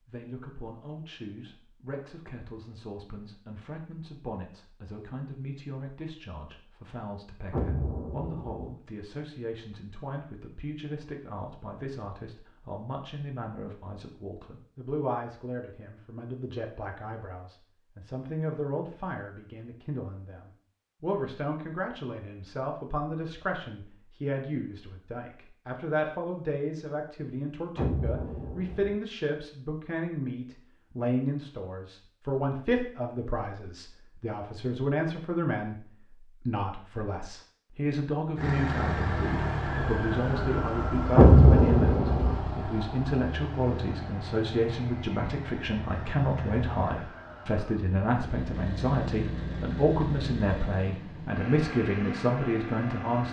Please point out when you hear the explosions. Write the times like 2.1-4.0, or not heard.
7.5-8.8, 27.8-28.9, 41.1-42.4.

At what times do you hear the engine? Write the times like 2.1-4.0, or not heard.
38.4-53.2.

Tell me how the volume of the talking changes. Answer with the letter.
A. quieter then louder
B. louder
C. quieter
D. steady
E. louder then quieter
B.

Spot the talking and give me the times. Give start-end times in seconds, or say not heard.
0.1-53.2.